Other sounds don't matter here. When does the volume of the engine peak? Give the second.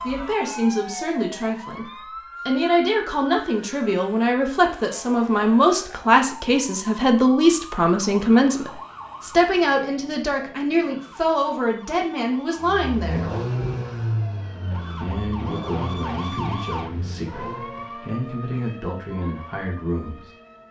14 s.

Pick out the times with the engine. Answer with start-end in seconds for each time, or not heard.
12.6-17.9.